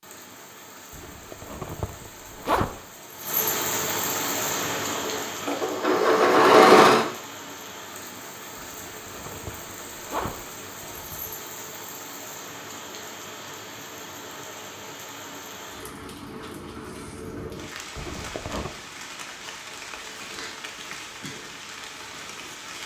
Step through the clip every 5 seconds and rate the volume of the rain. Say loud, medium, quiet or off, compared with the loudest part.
loud, medium, medium, medium, medium.